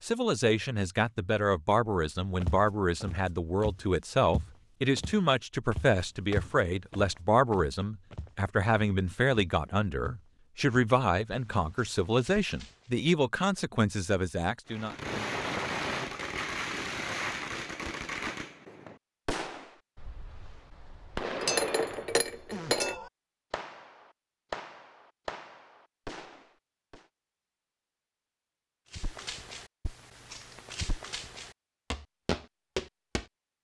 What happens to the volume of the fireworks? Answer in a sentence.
The loudness of the fireworks goes down.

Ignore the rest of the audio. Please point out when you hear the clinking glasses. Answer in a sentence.
You can hear the clinking glasses from 21.2 to 23.0 s.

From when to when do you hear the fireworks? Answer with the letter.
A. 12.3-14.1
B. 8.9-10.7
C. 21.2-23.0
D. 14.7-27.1
D.